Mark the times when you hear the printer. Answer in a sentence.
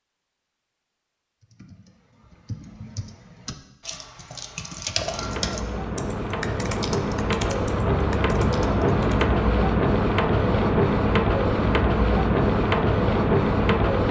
The printer can be heard from 5.0 to 14.0 s.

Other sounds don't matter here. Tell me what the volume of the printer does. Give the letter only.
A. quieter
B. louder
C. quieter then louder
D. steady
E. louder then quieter
B.